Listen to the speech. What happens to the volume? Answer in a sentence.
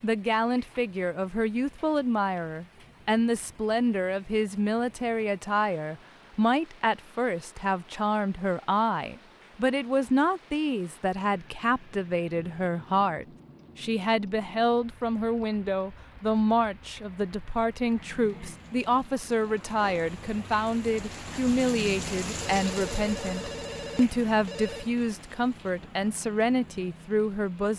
The loudness of the speech stays about the same.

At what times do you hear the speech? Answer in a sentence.
You can hear the speech from 0.0 to 27.7 s.